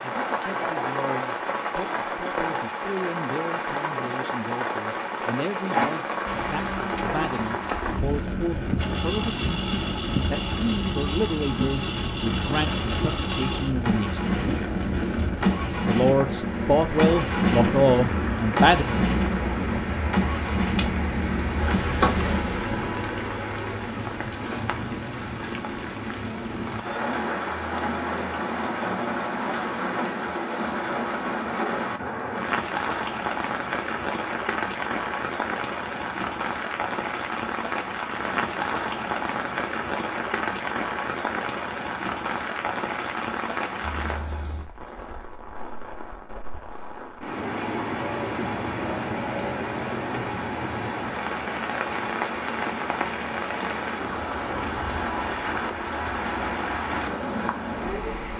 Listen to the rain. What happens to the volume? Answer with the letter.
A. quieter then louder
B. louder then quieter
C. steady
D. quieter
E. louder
C.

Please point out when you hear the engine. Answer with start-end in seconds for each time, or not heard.
6.2-22.9.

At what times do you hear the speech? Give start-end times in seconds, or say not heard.
0.0-14.3, 15.8-18.9.